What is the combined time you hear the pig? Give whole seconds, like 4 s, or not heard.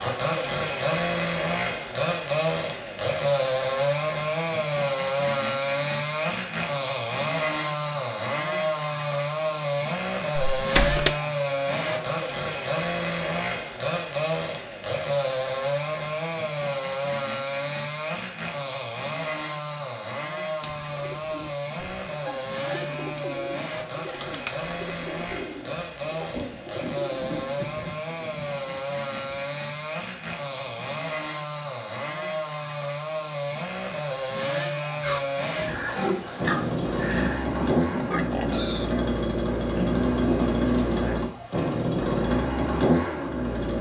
6 s.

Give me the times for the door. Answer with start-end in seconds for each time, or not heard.
10.3-11.1.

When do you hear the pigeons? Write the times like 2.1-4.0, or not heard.
20.6-27.4.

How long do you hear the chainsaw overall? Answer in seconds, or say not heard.
44 s.